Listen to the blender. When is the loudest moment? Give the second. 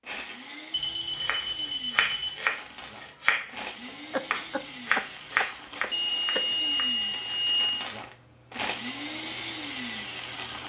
9 s.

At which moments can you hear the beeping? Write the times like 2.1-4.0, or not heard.
0.7-2.3, 5.9-7.8.